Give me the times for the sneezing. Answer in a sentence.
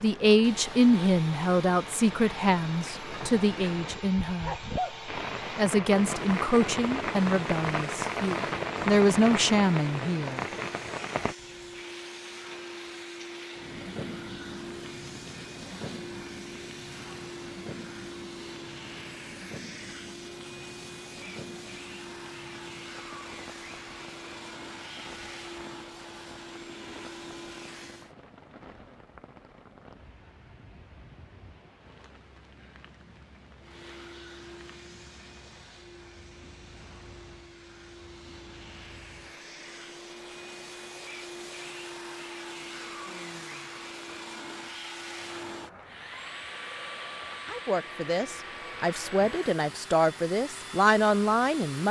You can hear the sneezing from 4.4 to 5.0 s.